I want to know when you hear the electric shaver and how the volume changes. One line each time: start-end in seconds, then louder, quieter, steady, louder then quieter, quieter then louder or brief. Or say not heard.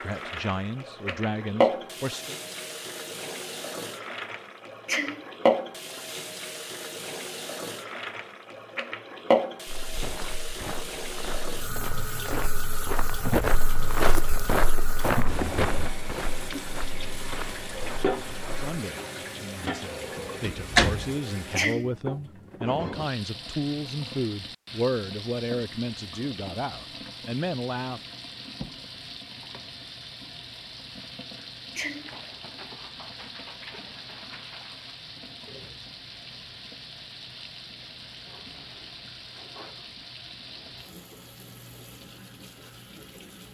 not heard.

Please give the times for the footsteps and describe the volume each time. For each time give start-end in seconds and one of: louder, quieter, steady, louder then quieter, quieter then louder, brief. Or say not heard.
9.7-18.8 louder then quieter.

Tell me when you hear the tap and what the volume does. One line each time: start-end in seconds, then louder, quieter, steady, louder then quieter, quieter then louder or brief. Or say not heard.
0.0-43.4 quieter.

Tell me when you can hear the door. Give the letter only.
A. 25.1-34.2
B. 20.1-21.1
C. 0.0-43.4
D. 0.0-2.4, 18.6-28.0
B.